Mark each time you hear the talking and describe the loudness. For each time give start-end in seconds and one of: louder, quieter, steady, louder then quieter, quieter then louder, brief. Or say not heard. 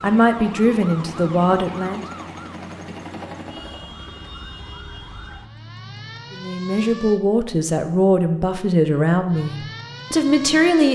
0.0-2.0 brief
6.3-10.8 steady.